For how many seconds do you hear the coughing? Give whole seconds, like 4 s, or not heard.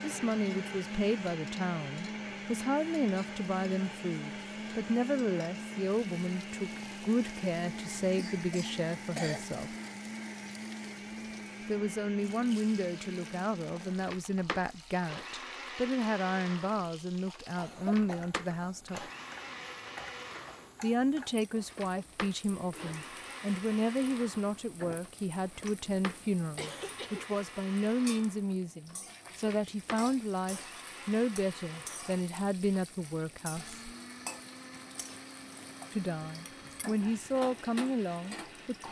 3 s.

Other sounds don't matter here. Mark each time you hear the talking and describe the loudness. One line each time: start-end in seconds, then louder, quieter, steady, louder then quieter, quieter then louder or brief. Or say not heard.
0.0-9.8 steady
11.7-19.1 steady
20.8-33.9 steady
35.9-38.8 brief.